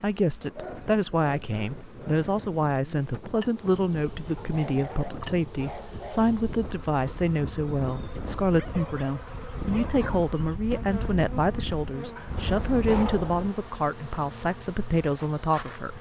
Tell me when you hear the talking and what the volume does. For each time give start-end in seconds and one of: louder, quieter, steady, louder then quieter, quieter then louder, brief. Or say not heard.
0.0-15.9 steady.